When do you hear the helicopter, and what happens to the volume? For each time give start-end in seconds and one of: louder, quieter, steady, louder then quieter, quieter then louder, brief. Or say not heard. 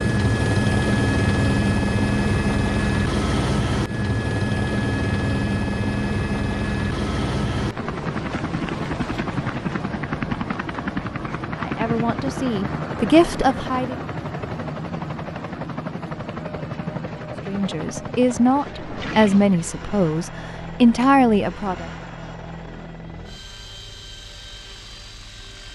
0.0-25.6 quieter.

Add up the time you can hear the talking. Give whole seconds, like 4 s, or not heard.
7 s.